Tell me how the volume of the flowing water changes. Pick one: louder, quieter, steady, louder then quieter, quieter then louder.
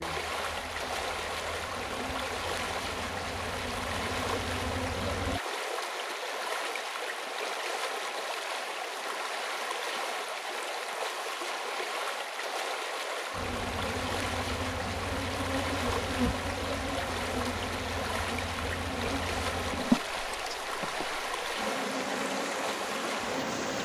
steady.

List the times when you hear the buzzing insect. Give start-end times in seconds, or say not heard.
0.0-5.4, 13.3-23.7.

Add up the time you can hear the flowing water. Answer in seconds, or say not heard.
24 s.